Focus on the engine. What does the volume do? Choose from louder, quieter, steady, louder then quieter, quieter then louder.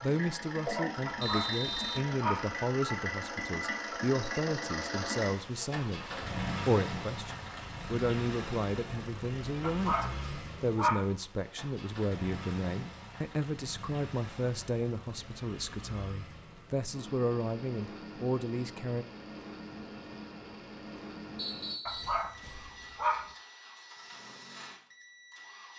quieter.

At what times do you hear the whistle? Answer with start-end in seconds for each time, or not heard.
1.2-2.0, 21.4-22.2.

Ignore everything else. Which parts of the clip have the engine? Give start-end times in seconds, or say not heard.
0.0-25.7.